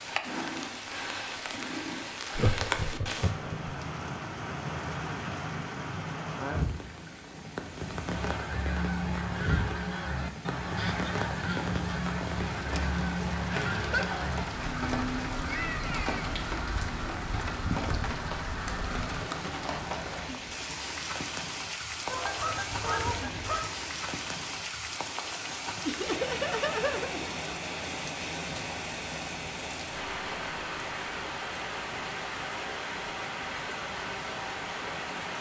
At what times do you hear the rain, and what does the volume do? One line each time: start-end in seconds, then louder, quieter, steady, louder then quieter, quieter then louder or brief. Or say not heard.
0.0-35.3 steady.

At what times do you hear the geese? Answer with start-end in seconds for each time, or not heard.
8.1-19.3, 22.1-23.8.